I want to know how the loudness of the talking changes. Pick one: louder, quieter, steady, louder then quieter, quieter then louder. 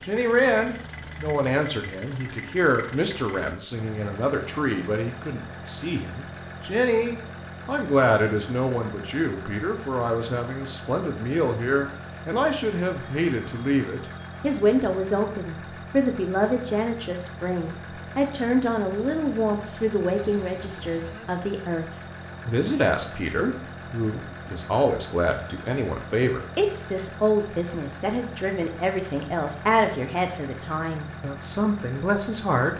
steady.